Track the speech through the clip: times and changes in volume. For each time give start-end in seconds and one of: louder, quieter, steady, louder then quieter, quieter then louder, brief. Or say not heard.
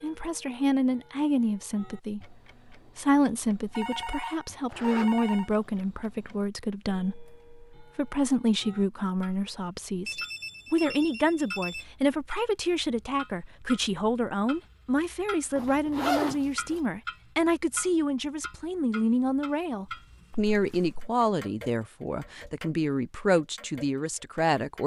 0.0-24.8 steady.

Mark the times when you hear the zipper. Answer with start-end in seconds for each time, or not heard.
4.7-5.8, 15.6-16.8.